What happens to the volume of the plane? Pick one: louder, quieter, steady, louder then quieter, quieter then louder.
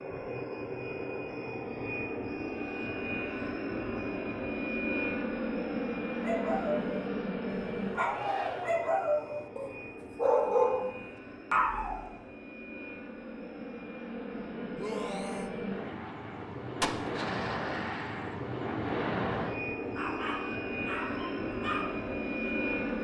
quieter then louder.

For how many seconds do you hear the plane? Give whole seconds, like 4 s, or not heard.
23 s.